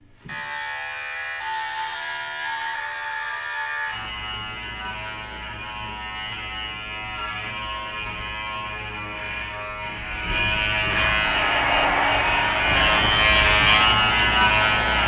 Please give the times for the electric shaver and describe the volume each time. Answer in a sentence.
You can hear the electric shaver from 0.0 to 15.0 s, getting louder.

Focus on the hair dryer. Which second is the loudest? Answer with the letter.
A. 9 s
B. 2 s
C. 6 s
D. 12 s
D.